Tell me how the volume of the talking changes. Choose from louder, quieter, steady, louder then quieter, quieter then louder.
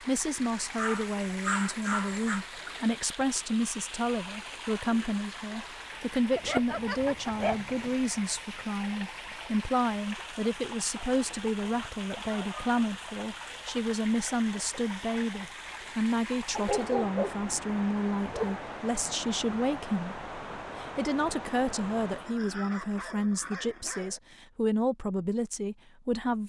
steady.